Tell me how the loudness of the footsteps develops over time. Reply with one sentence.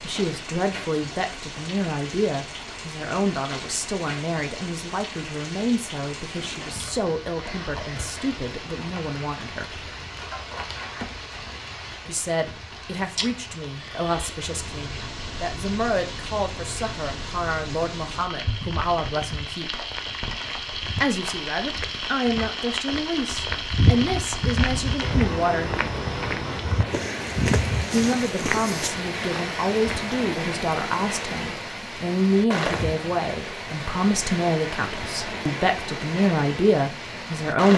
The loudness of the footsteps goes up.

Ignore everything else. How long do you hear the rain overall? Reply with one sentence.
The rain can be heard for 38 seconds in total.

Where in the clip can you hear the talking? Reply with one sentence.
You can hear the talking from 0.0 to 9.8 s, from 12.1 to 19.9 s, from 21.0 to 25.8 s and from 27.9 to 37.7 s.